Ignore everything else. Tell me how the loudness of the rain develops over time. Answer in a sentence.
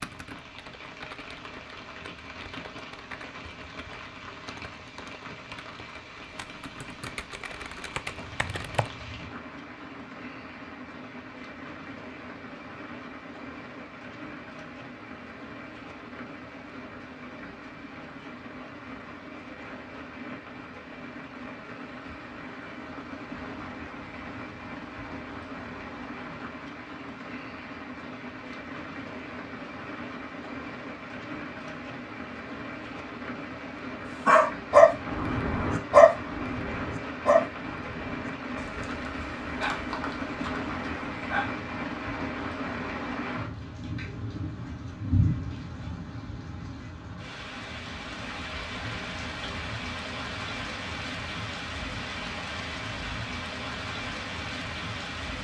The volume of the rain goes up.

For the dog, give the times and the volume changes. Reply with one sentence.
The dog can be heard from 34.2 to 41.5 s, getting quieter.